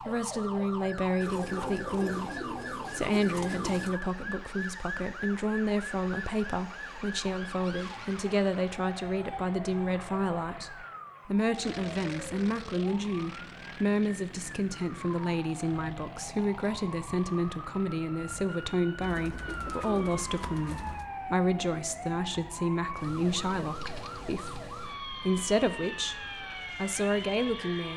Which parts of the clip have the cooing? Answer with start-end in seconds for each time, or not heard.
1.2-4.0, 19.0-21.1.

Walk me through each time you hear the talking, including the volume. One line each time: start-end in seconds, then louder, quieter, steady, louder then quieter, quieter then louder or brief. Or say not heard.
0.0-27.9 steady.